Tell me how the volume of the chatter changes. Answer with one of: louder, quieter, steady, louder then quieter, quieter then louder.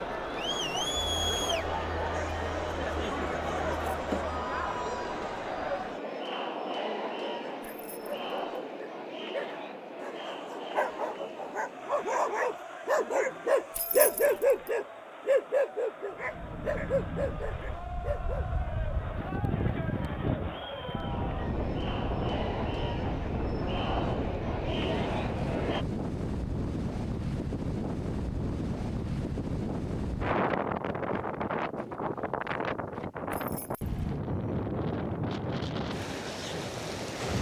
quieter then louder.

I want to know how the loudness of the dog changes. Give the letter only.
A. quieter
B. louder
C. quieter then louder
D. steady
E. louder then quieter
E.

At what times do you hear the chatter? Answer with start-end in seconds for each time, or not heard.
0.0-25.9.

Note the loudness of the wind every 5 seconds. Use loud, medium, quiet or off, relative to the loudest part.
off, off, off, medium, loud, loud, loud, loud.